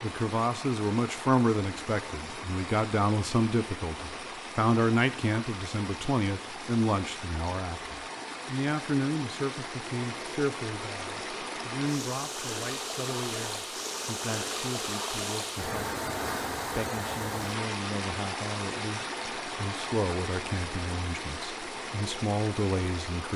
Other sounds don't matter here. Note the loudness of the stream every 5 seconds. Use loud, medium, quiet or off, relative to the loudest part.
medium, medium, loud, loud, loud.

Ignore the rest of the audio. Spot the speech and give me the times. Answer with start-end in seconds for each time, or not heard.
0.0-15.9, 16.8-23.3.